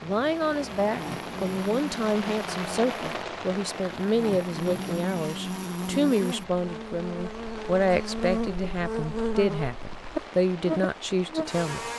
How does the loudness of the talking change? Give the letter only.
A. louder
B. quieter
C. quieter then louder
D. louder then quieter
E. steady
E.